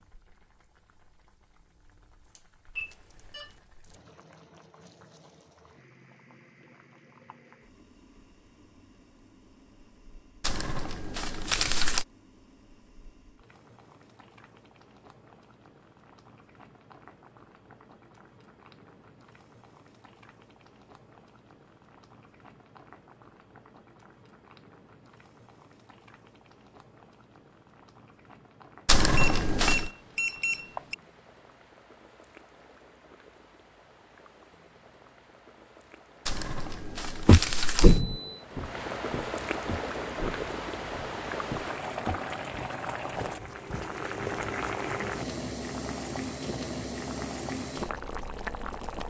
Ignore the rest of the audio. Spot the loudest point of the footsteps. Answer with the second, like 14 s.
38 s.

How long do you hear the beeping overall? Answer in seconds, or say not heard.
3 s.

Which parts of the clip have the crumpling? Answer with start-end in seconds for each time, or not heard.
10.4-12.1, 28.9-29.9, 36.2-38.0.